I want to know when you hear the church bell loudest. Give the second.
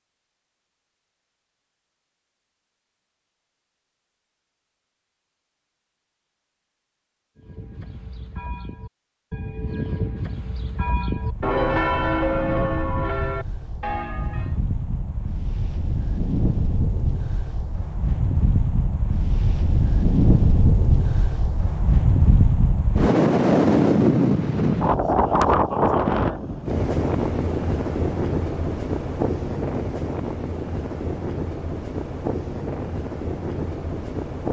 12 s.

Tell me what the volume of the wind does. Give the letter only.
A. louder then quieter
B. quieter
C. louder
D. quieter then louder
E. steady
A.